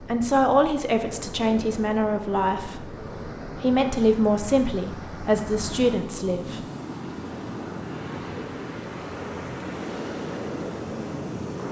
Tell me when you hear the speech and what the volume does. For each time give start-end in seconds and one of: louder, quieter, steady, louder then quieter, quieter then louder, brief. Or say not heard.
0.0-6.6 steady.